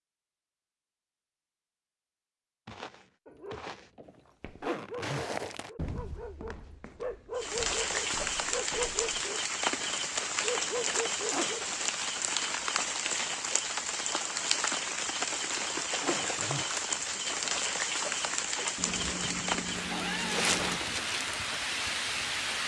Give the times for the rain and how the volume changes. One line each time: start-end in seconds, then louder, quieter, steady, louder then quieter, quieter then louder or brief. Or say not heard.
7.3-22.6 steady.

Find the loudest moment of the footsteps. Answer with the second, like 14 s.
5 s.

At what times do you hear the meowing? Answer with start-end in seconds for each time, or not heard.
18.8-20.8.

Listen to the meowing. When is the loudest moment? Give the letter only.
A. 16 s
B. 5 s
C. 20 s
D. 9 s
C.